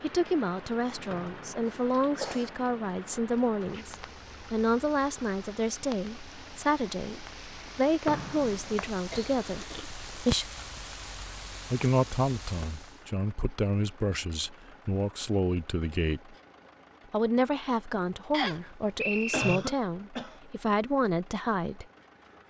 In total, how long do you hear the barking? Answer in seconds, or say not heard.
not heard.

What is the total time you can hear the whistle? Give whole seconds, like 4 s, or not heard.
3 s.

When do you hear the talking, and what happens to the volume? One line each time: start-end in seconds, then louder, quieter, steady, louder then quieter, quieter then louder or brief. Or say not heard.
0.0-10.4 steady
11.7-16.4 steady
17.1-21.9 quieter then louder.